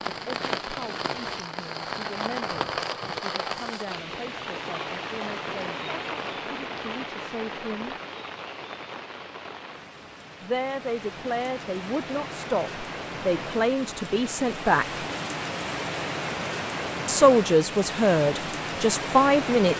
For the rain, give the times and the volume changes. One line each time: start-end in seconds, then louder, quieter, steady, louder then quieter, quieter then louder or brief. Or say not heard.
0.0-19.7 quieter then louder.